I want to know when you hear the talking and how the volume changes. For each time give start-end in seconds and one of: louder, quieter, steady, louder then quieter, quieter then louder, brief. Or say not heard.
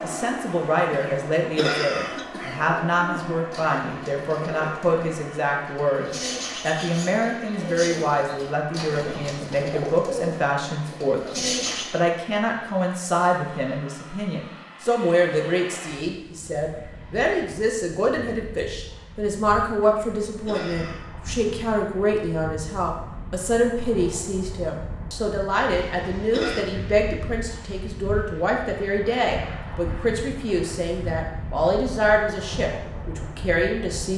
0.0-34.1 steady.